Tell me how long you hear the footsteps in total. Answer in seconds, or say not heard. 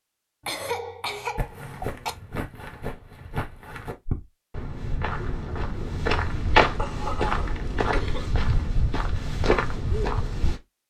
9 s.